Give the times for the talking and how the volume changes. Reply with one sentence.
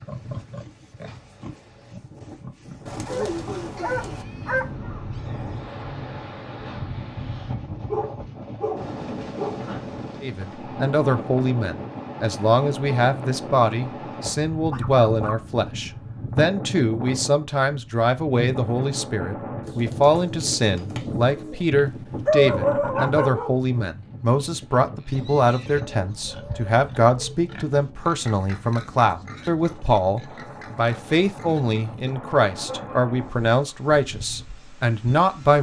You can hear the talking from 10.2 to 35.5 s, at a steady volume.